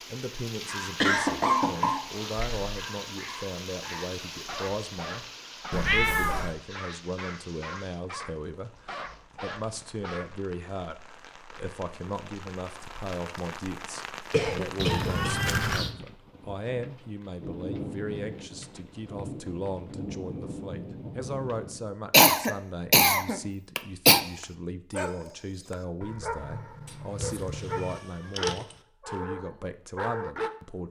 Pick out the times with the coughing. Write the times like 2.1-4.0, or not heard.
1.0-2.8, 14.3-15.3, 22.1-24.2.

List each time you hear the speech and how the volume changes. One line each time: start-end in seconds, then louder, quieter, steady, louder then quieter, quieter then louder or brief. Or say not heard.
0.1-30.8 steady.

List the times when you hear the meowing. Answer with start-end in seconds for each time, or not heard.
5.7-6.5, 14.8-15.9, 26.9-28.8.